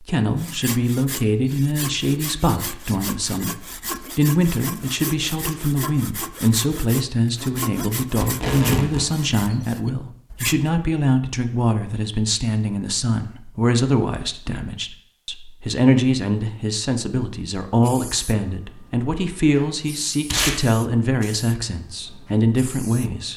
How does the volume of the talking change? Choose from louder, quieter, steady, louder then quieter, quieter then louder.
steady.